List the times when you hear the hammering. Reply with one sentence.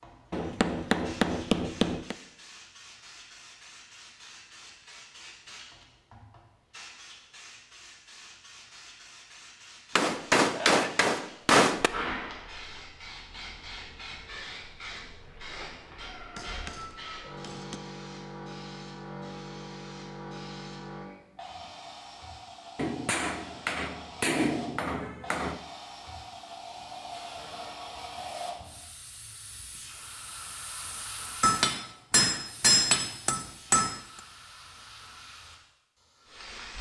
You can hear the hammering from 0.3 to 2.1 s, from 9.9 to 11.9 s, from 16.4 to 17.8 s, from 22.8 to 25.6 s and from 31.4 to 34.0 s.